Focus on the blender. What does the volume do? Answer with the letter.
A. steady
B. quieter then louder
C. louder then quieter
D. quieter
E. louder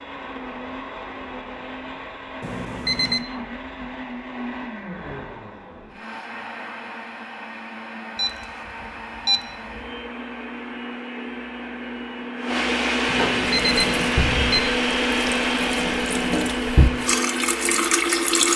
E.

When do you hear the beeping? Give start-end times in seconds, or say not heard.
2.4-3.2, 8.2-9.9, 13.1-14.7.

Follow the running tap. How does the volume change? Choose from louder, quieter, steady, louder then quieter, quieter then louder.
louder.